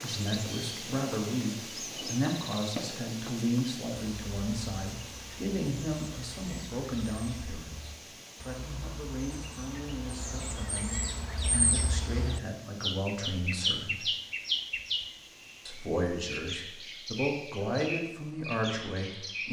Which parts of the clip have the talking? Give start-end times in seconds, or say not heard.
0.0-14.1, 15.7-19.4.